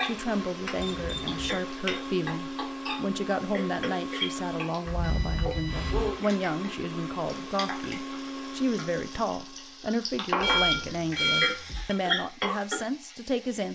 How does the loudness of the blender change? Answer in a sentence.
The loudness of the blender stays about the same.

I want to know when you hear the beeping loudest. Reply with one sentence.
The volume of the beeping peaks at 11 seconds.